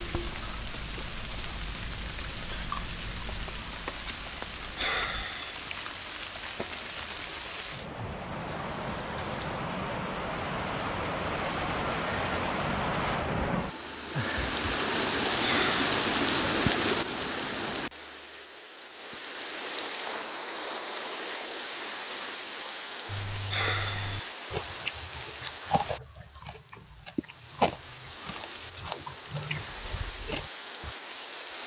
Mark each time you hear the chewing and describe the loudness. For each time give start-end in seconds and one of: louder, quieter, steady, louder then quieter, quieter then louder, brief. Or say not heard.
0.0-5.3 louder then quieter
23.1-30.9 louder then quieter.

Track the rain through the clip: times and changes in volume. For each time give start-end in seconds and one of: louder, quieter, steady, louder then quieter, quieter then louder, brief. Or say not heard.
0.0-31.6 louder then quieter.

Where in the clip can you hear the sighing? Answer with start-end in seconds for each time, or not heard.
4.8-5.6, 15.4-15.8, 23.5-24.4.